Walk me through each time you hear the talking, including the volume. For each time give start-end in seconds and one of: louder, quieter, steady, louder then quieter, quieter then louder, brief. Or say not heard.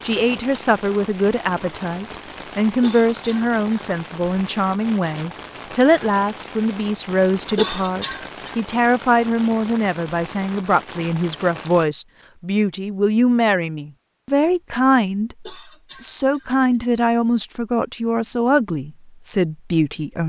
0.0-20.2 steady.